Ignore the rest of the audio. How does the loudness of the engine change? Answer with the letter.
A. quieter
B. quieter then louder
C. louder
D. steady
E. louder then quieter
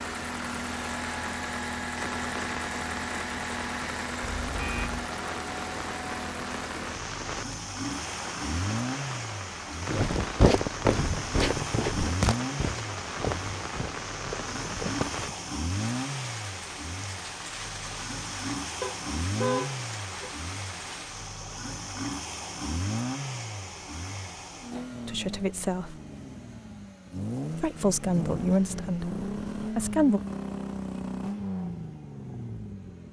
D.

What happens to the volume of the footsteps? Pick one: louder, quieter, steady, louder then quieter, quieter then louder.
quieter.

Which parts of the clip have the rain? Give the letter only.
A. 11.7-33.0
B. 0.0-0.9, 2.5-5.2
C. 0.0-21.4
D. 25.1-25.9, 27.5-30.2
C.